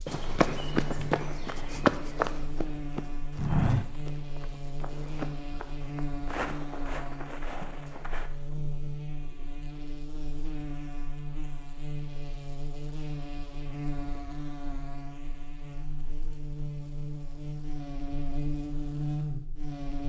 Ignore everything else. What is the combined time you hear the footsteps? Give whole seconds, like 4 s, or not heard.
8 s.